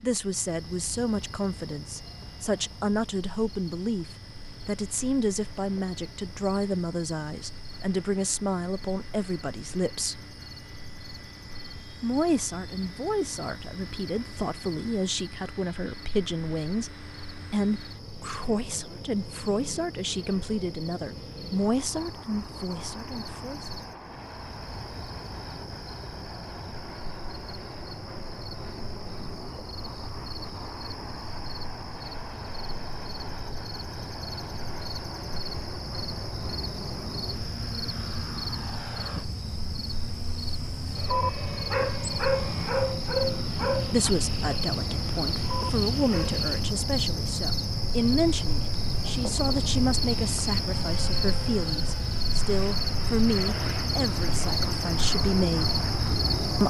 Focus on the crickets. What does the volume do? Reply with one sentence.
The loudness of the crickets goes up.